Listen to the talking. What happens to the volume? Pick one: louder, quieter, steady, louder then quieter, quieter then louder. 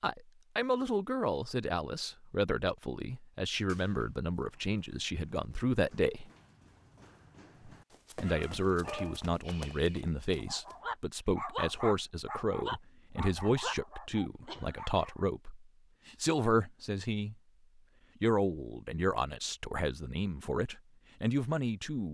steady.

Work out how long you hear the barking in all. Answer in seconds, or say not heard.
7 s.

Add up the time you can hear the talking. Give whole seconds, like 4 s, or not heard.
19 s.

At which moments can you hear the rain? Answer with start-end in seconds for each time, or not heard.
not heard.